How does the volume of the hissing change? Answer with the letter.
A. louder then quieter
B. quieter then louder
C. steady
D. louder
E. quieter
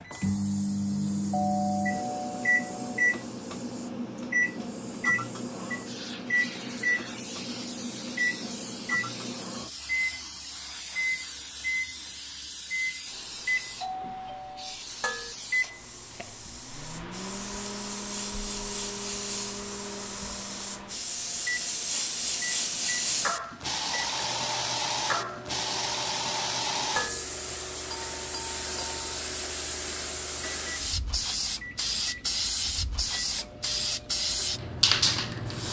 D.